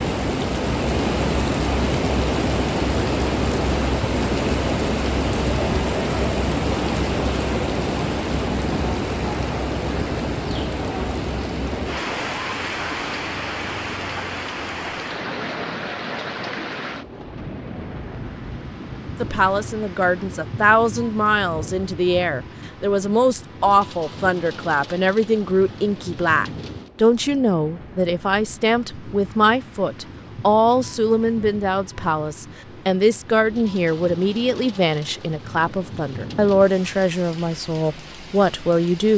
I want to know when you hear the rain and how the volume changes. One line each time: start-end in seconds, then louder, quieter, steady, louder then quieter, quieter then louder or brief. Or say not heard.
0.0-39.1 quieter.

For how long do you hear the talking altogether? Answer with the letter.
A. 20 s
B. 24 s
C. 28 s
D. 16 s
A.